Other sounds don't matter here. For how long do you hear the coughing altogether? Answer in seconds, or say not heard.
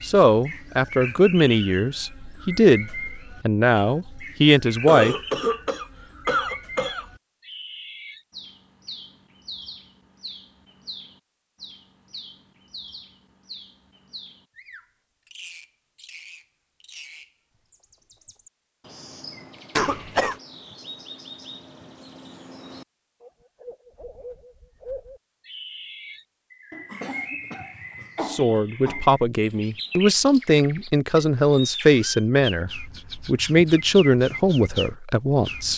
5 s.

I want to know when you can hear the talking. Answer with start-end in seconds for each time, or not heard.
0.0-5.2, 28.2-35.7.